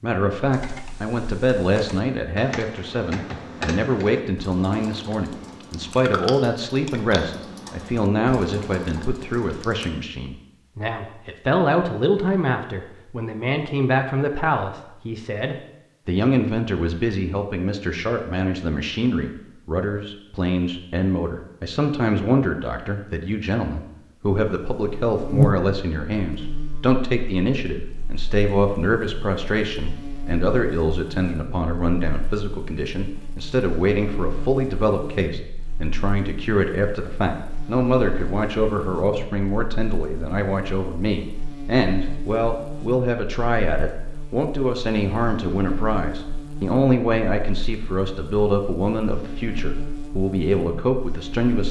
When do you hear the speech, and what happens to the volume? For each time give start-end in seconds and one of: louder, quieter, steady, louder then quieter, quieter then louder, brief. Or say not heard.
0.0-51.6 steady.